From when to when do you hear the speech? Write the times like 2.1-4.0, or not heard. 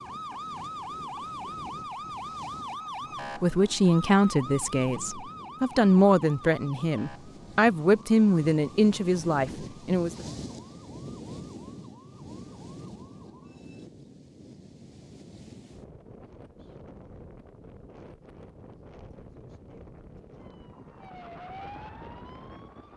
3.4-10.2.